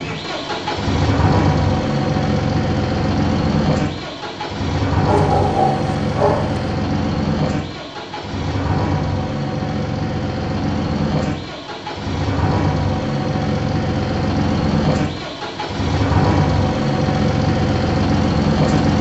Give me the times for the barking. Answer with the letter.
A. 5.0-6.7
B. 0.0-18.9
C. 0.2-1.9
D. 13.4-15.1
A.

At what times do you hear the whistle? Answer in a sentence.
The whistle can't be heard in this clip.